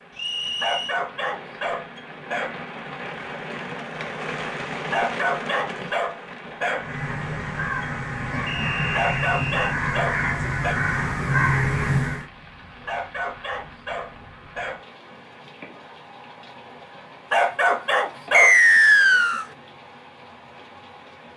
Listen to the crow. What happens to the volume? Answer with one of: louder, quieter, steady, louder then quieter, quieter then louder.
louder.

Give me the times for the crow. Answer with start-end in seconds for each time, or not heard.
6.8-12.2.